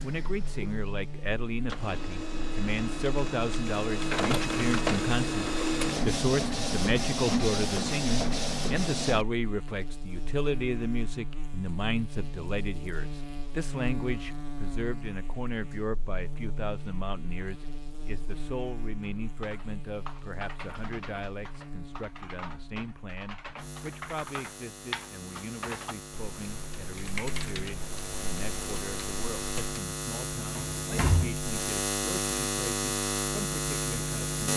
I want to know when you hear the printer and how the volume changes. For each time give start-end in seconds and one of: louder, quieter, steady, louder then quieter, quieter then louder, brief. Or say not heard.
0.0-9.2 louder.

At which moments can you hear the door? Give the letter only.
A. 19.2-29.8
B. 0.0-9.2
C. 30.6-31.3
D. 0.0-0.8
C.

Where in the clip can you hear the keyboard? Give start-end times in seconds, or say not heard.
19.2-29.8.